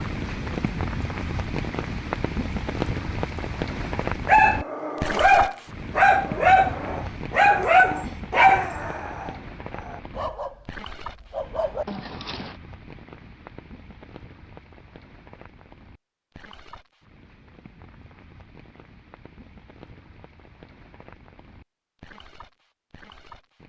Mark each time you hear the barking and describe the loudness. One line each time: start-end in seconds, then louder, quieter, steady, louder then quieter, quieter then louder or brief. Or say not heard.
4.2-12.6 quieter.